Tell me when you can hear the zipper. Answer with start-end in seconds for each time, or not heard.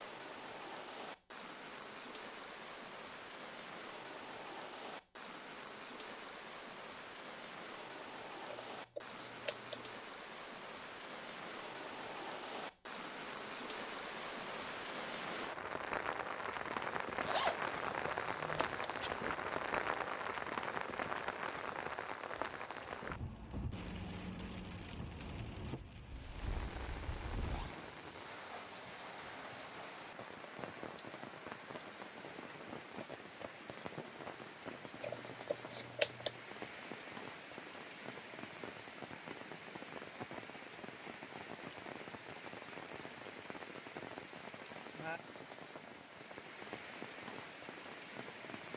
17.2-19.1, 26.1-27.8.